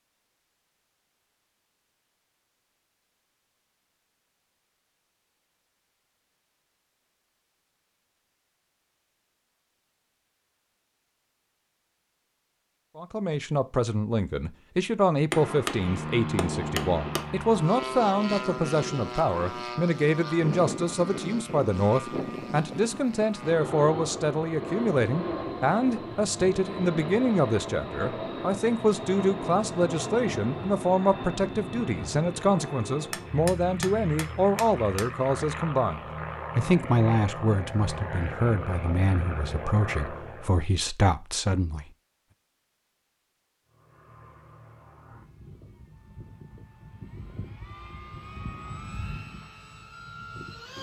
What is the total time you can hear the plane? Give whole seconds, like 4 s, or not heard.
32 s.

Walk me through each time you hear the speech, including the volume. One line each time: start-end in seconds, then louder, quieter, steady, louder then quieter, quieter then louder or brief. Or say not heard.
12.9-41.9 steady.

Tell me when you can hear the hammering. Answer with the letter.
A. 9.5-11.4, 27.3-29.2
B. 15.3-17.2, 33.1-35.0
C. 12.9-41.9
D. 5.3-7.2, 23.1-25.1
B.